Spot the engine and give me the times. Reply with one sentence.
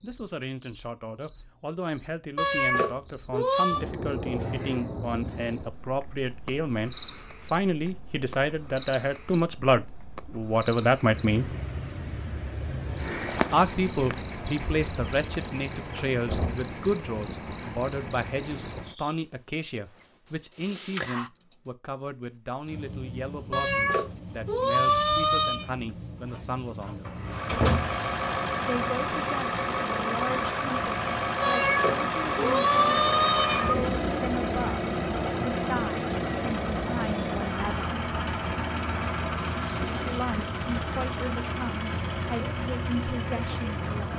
You can hear the engine from 27.1 to 44.1 s.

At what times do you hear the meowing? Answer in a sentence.
You can hear the meowing from 2.4 to 3.9 s, from 23.5 to 25.7 s and from 31.4 to 33.9 s.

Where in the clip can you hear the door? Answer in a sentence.
The door can be heard from 15.9 to 17.6 s and from 27.1 to 27.9 s.